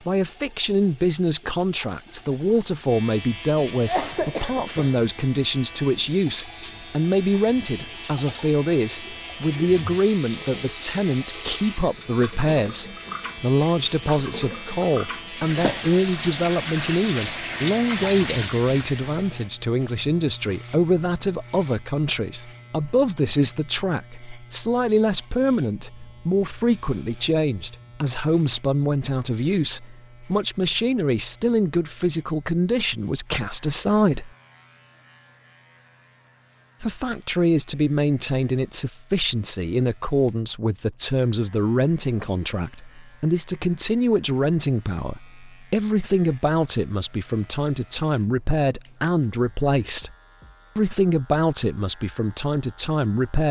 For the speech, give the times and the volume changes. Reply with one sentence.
You can hear the speech from 0.1 to 34.3 s, at a steady volume; from 36.8 to 50.1 s, at a steady volume; and briefly from 50.8 to 53.4 s.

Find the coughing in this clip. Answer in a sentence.
You can hear the coughing from 3.7 to 5.1 s.